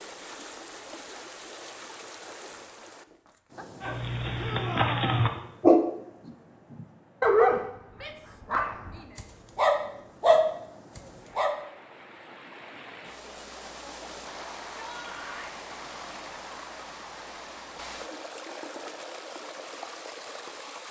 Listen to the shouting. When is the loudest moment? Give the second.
5 s.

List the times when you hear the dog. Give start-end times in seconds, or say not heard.
3.8-7.6, 8.5-11.6.